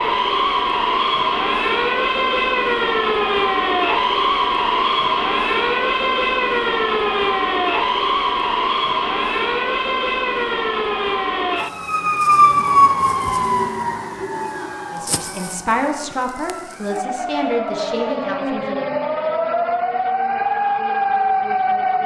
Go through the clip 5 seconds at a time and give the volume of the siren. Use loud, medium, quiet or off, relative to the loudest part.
loud, loud, loud, medium, loud.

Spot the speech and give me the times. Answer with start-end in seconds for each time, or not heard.
14.9-18.9.